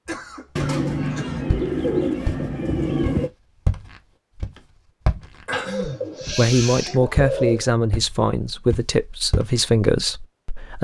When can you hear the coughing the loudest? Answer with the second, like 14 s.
6 s.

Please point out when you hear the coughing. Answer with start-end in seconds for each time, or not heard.
0.1-1.4, 5.5-6.1.